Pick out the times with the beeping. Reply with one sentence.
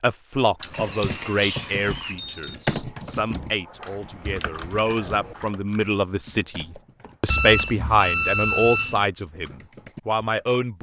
You can hear the beeping from 0.6 to 2.5 s and from 7.2 to 9.1 s.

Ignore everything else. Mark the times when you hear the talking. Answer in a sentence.
The talking can be heard from 0.0 to 10.7 s.